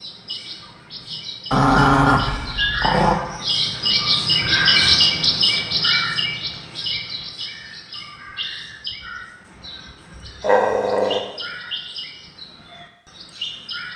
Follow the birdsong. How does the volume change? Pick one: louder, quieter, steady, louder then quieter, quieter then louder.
louder then quieter.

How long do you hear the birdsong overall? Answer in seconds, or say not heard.
14 s.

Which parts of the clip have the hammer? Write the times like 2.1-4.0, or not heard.
not heard.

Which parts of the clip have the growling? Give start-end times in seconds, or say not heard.
1.5-3.2, 10.4-11.2.